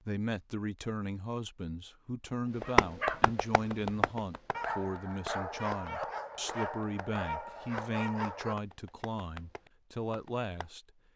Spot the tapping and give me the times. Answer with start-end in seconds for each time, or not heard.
2.6-10.7.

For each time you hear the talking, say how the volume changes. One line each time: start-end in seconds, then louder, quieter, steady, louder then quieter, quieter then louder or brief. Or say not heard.
0.1-10.8 steady.